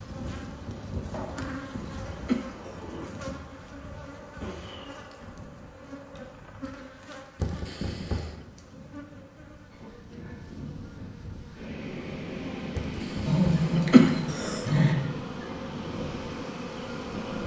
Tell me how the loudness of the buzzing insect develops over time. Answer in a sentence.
The loudness of the buzzing insect goes down, then up.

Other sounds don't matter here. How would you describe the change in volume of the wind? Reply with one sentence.
The loudness of the wind goes up.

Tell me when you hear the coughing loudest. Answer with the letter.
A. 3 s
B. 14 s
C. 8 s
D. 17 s
B.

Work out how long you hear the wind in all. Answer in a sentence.
The wind can be heard for 12 seconds in total.